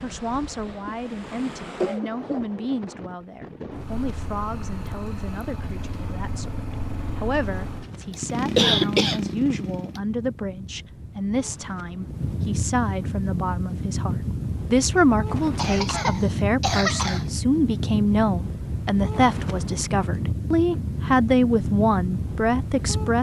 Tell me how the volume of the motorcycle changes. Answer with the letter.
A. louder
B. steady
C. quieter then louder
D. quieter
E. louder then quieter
A.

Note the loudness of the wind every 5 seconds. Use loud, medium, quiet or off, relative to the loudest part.
medium, quiet, loud, loud, loud.